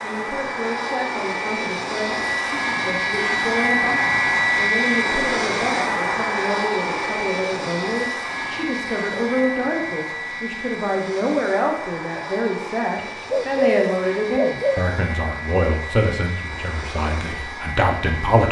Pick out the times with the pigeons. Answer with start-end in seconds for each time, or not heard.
12.9-14.8.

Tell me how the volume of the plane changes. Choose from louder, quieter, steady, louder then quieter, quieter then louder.
quieter.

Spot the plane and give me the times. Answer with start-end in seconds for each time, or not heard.
0.0-18.4.